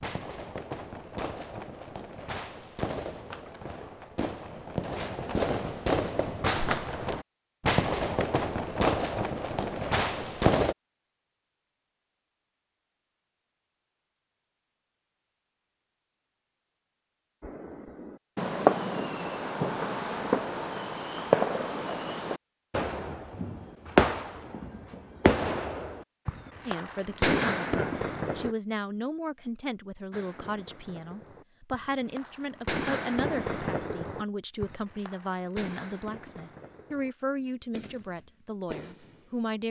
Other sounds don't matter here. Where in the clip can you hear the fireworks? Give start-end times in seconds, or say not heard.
0.0-10.8, 17.4-28.6, 30.1-39.5.